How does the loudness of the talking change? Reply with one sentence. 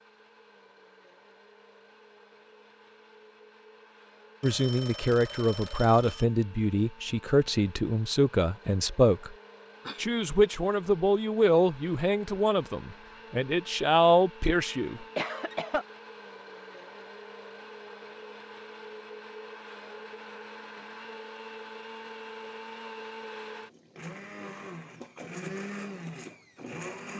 The loudness of the talking stays about the same.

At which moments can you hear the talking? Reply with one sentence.
The talking can be heard from 4.4 to 9.3 s and from 9.9 to 15.0 s.